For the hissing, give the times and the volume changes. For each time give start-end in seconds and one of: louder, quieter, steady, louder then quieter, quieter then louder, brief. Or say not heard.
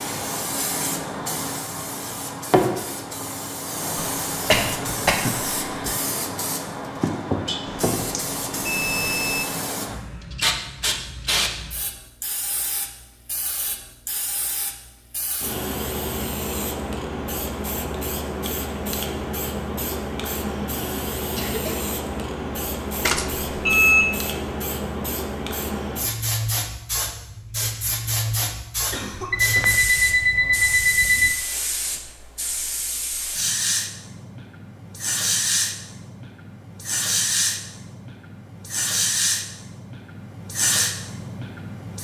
0.0-41.9 steady.